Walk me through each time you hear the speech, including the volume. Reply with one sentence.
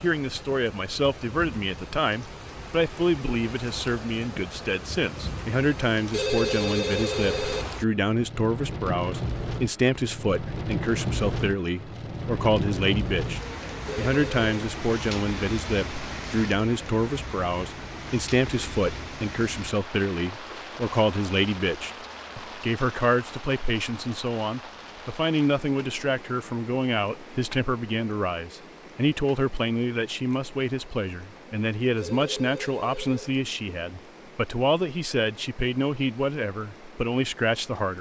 The speech can be heard from 0.0 to 37.9 s, at a steady volume.